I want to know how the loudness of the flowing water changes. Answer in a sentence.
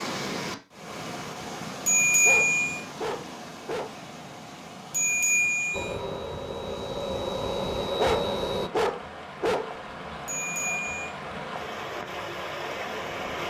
The loudness of the flowing water goes down, then up.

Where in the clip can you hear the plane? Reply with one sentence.
The plane can be heard from 5.7 to 8.7 s.